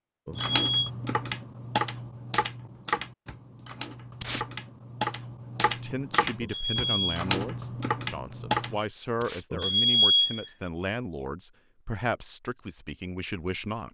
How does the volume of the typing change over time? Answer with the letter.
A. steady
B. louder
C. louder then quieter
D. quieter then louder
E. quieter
A.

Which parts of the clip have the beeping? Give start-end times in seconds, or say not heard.
0.2-0.9, 6.4-7.2, 9.5-10.4.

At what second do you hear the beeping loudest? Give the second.
10 s.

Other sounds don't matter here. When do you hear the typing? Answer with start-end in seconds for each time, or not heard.
0.3-8.8.